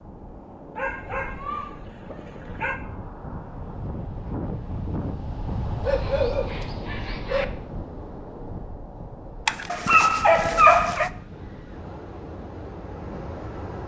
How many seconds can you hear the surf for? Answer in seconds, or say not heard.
14 s.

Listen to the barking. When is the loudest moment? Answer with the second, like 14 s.
11 s.